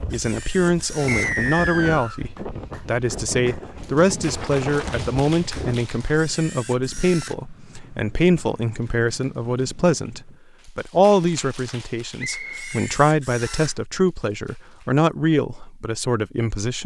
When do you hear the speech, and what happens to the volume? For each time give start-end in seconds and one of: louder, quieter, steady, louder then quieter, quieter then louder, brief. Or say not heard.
0.0-16.8 steady.